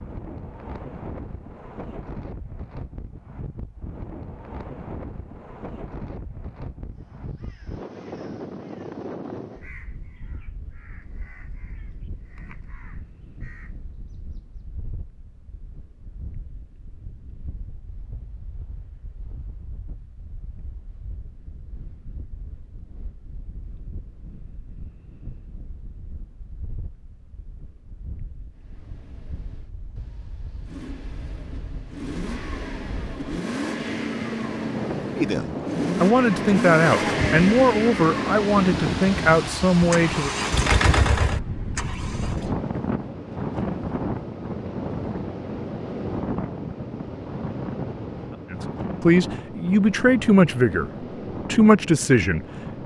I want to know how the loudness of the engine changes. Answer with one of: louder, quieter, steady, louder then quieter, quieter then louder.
louder.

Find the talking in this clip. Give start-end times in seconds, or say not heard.
35.1-40.3, 48.5-52.8.